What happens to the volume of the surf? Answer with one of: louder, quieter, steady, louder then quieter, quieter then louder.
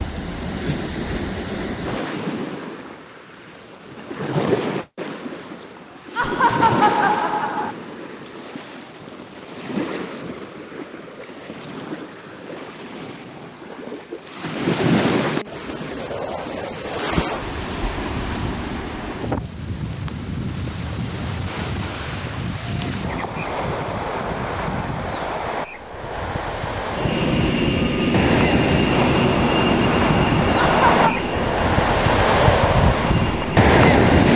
quieter then louder.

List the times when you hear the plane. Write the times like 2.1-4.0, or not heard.
26.9-34.3.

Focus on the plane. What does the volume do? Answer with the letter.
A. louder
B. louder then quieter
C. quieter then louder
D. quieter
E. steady
D.